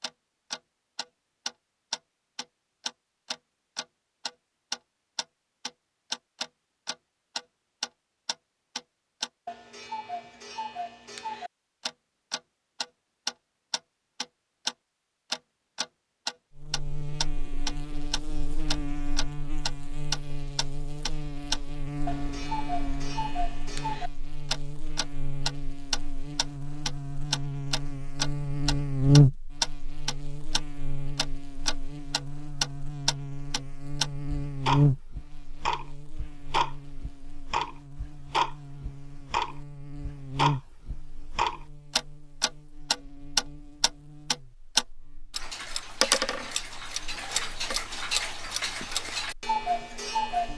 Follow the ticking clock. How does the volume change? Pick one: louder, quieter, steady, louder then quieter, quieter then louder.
louder.